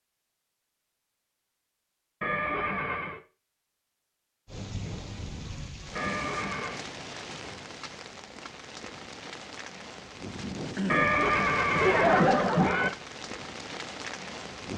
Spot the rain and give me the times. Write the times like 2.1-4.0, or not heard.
4.5-14.7.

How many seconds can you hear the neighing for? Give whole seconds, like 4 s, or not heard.
4 s.